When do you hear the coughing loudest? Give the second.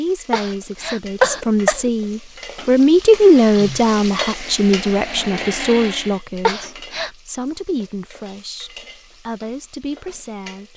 1 s.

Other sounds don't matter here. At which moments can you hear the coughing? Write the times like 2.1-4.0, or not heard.
0.3-1.9, 6.5-7.1.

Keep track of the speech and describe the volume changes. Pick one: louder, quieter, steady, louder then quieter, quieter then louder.
louder then quieter.